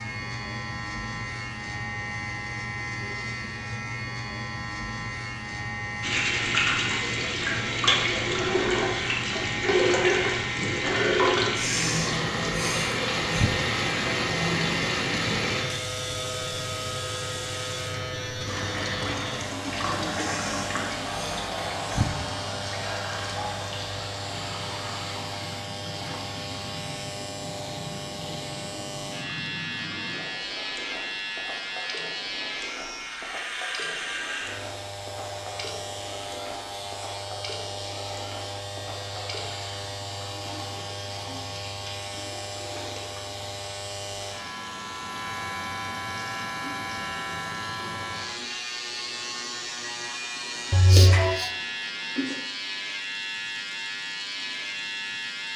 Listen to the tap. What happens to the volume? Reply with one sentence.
The volume of the tap goes down.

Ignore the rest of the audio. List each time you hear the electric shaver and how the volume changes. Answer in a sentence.
The electric shaver can be heard from 0.0 to 55.5 s, at a steady volume.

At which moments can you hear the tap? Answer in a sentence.
You can hear the tap from 6.0 to 55.5 s.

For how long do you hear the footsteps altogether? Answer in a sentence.
The footsteps can't be heard in this clip.